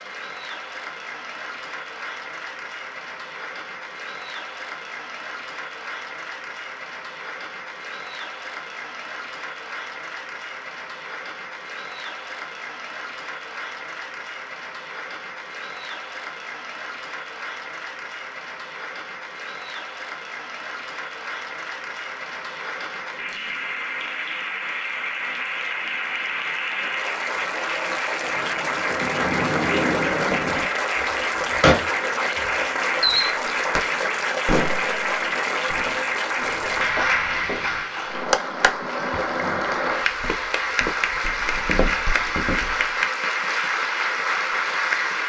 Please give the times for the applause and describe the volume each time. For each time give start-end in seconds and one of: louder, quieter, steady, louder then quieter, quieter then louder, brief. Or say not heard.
0.0-45.2 louder.